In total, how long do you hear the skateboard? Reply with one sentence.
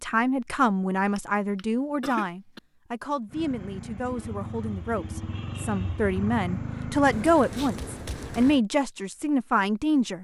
You can't hear the skateboard here.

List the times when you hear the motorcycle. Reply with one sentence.
The motorcycle can be heard from 3.2 to 7.3 s.